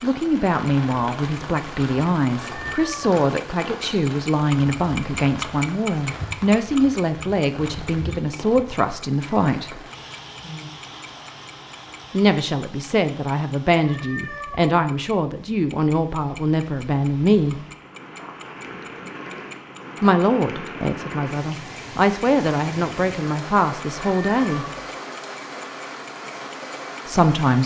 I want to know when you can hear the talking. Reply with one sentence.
You can hear the talking from 0.0 to 9.8 s, from 12.1 to 17.6 s, from 20.0 to 24.6 s and from 27.1 to 27.6 s.